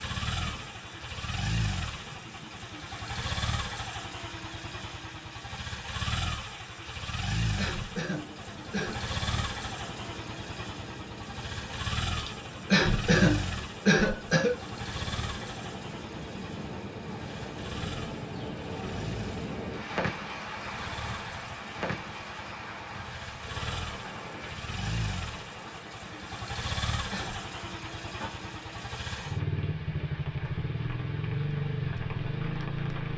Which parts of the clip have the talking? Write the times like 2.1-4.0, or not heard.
not heard.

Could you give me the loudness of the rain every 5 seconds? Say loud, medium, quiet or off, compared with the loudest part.
medium, medium, medium, loud, loud, medium, medium.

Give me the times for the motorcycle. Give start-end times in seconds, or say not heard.
0.0-33.1.